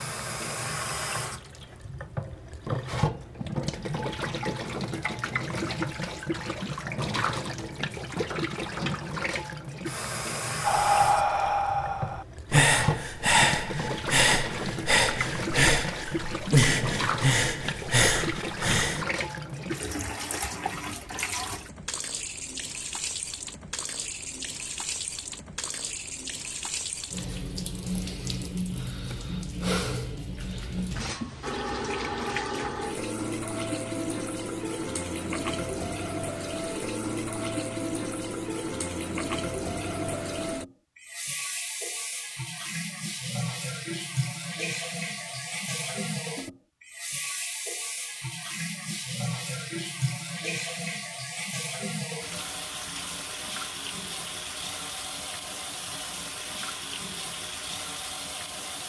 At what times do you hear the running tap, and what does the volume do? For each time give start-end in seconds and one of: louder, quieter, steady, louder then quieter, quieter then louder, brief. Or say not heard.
0.0-58.8 steady.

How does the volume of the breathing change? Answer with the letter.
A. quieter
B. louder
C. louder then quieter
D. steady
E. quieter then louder
D.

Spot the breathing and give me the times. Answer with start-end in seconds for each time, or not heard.
10.6-19.1.